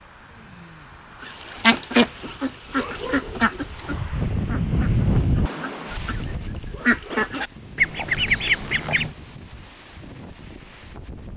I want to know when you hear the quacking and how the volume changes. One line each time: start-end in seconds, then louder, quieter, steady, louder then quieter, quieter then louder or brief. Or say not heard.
1.2-9.1 quieter then louder.